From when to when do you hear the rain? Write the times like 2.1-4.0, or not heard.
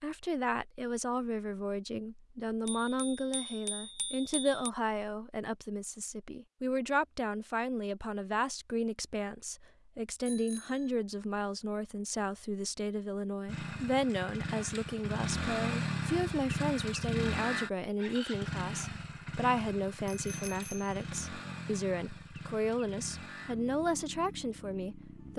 not heard.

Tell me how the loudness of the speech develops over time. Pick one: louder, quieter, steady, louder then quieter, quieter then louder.
steady.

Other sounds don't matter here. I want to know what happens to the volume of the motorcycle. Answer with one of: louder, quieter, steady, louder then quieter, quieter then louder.
quieter.